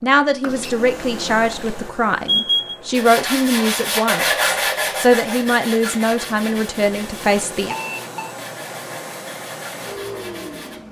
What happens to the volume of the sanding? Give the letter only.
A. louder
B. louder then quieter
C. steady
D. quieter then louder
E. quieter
E.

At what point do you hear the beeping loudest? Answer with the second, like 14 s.
2 s.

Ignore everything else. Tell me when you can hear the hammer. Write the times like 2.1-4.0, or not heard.
not heard.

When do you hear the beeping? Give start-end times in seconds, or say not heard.
0.5-2.8, 7.7-8.3.